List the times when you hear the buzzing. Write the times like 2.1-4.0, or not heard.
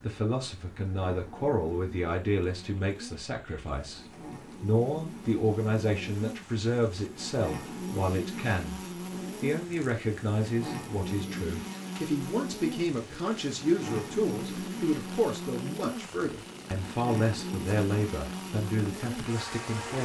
0.0-19.9.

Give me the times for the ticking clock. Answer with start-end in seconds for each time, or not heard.
not heard.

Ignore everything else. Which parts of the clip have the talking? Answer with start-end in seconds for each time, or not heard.
0.0-19.9.